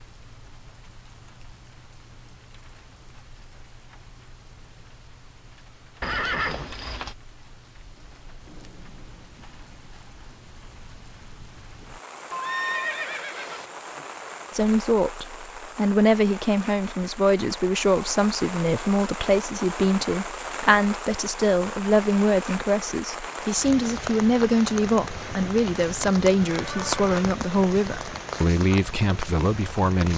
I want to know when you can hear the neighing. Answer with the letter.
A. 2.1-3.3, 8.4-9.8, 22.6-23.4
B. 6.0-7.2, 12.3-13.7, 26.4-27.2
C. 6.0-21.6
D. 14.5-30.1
B.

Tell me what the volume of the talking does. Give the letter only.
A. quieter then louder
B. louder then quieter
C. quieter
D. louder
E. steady
E.